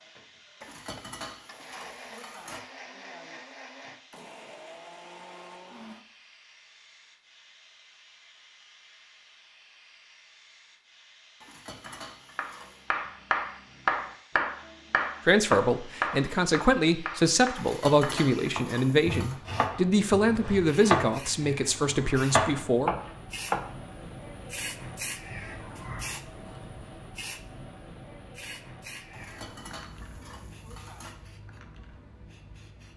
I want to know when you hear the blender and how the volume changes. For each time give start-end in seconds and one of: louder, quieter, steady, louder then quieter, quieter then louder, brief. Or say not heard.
0.0-6.0 louder.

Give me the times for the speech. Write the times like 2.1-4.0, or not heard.
15.2-22.9.